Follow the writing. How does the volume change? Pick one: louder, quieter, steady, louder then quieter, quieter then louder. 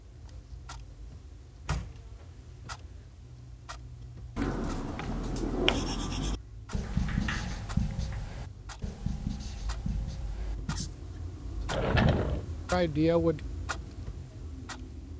quieter.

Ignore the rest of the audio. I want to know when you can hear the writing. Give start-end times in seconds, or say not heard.
4.3-11.1.